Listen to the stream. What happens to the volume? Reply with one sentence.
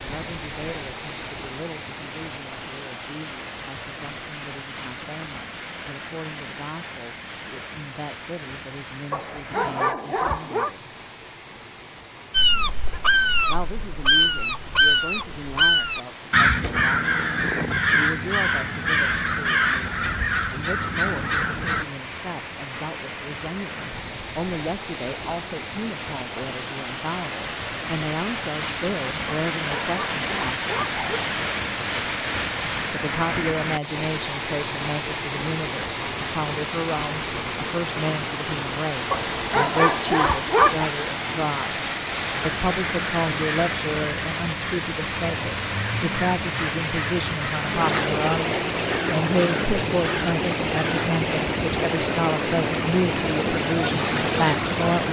The loudness of the stream goes up.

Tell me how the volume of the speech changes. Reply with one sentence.
The loudness of the speech goes up.